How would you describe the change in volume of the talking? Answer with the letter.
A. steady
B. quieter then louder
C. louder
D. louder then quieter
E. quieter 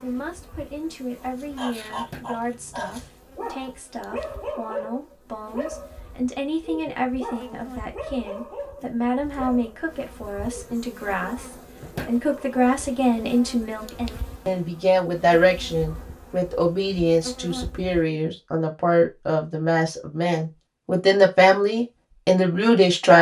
C.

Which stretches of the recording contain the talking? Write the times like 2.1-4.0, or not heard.
0.0-23.1.